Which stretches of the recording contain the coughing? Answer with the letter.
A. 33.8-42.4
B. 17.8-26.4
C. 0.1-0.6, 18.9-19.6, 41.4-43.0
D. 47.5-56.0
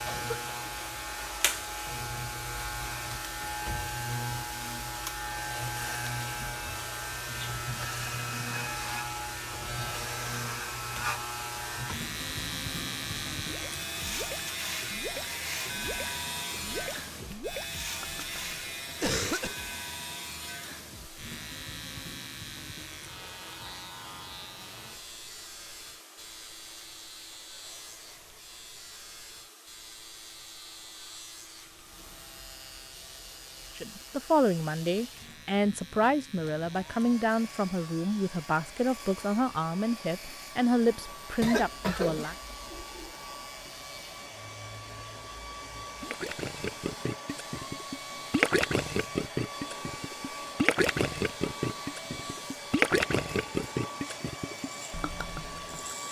C.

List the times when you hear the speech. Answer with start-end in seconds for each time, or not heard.
33.8-42.4.